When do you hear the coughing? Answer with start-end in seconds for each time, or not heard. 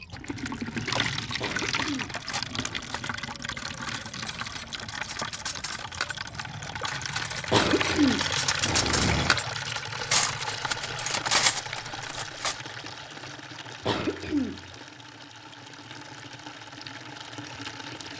1.4-3.0, 7.5-9.4, 13.8-14.7.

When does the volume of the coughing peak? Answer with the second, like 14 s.
8 s.